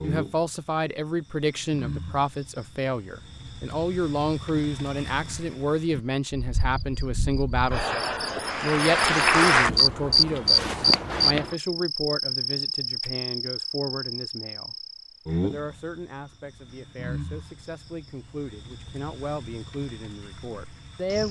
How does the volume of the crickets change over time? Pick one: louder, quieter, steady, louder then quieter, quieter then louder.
louder then quieter.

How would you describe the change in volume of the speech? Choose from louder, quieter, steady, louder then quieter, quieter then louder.
quieter.